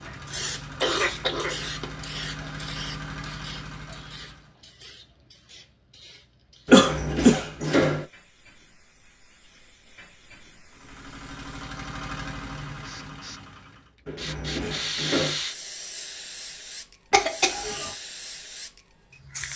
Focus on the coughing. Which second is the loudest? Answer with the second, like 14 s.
7 s.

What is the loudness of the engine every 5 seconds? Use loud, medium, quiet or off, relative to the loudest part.
loud, off, loud, off.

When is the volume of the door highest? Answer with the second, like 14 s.
8 s.